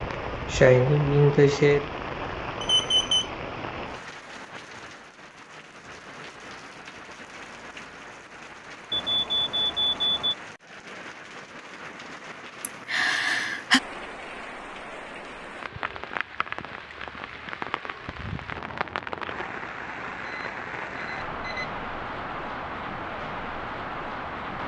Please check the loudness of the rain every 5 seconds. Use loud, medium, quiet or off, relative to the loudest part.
loud, medium, medium, loud, loud.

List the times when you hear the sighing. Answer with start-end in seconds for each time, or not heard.
0.1-1.9, 12.6-13.8.